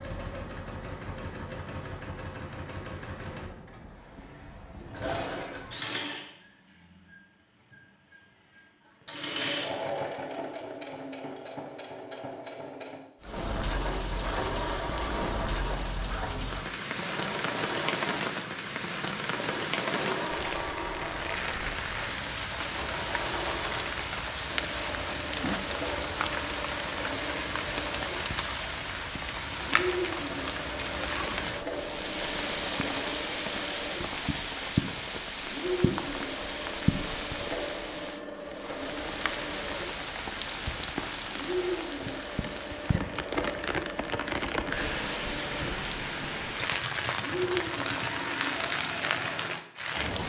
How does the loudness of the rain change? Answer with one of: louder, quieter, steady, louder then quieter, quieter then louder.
steady.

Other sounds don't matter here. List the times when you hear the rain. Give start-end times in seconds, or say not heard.
13.2-50.2.